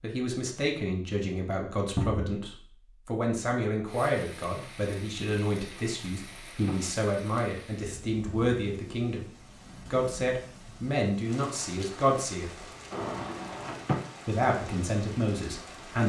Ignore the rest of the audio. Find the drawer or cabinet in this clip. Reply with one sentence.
You can hear the drawer or cabinet from 1.9 to 2.4 s, from 5.7 to 7.0 s and from 12.9 to 14.0 s.